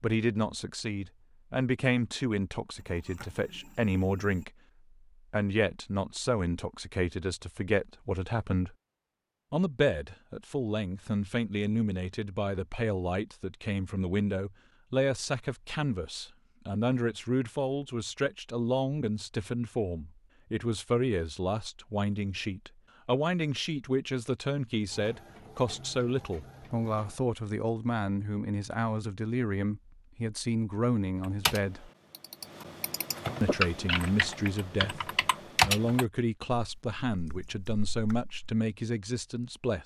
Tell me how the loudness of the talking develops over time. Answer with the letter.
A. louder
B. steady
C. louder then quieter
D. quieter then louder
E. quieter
B.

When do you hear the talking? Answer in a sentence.
The talking can be heard from 0.0 to 4.5 s, from 5.3 to 8.8 s, from 9.5 to 31.9 s and from 33.4 to 39.8 s.